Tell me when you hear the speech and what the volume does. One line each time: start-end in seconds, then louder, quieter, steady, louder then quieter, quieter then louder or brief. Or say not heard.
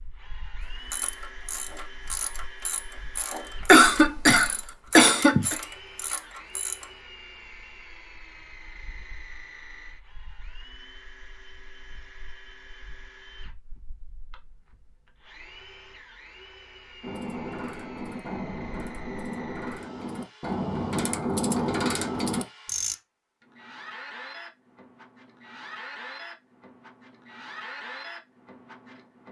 not heard.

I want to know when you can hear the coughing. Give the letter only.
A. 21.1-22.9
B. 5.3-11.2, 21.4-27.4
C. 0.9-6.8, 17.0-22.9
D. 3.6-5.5
D.